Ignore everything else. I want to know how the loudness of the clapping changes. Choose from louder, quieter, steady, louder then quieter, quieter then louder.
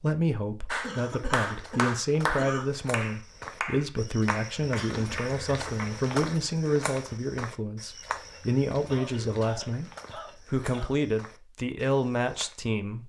quieter.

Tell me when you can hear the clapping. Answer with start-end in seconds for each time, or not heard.
0.7-5.8.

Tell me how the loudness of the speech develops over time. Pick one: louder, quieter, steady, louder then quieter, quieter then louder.
steady.